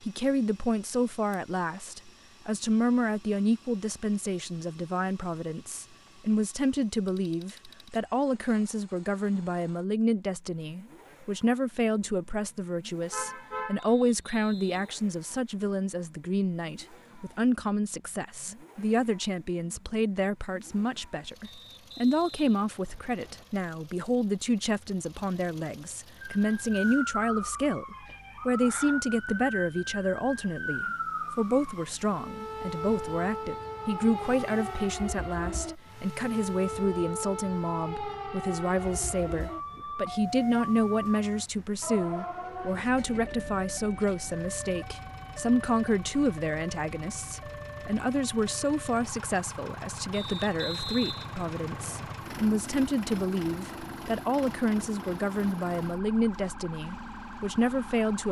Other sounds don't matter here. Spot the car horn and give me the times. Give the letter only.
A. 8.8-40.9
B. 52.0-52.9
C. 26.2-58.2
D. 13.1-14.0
D.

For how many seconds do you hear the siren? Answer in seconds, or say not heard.
32 s.